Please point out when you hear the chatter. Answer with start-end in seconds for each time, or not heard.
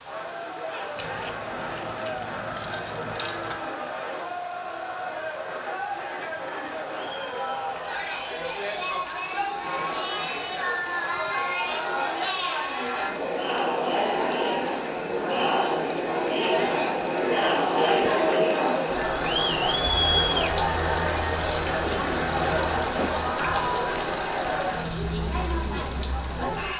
0.0-26.7.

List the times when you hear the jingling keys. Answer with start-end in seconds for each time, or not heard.
0.9-3.6.